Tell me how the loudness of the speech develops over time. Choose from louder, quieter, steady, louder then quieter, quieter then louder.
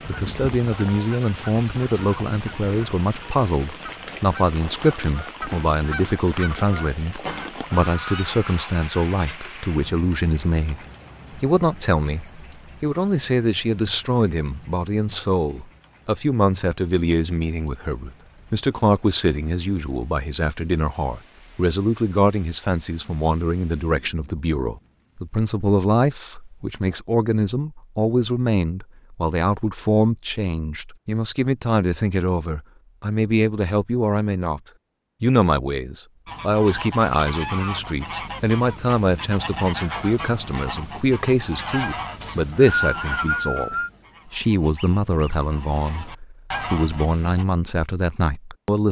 steady.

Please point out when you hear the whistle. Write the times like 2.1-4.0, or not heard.
42.2-43.9.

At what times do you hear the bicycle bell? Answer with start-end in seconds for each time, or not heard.
not heard.